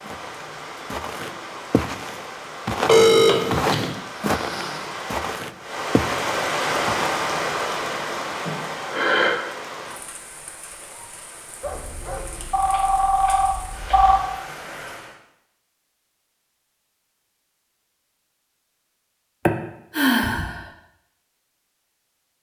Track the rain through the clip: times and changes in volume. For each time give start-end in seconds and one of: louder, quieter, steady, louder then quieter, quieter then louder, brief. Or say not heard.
0.0-15.2 louder then quieter.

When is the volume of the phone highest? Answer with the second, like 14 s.
3 s.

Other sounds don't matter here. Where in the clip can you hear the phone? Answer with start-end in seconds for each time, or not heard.
2.9-4.0, 11.6-14.2.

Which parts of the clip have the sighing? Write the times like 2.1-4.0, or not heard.
4.2-4.9, 8.4-9.4, 19.4-20.6.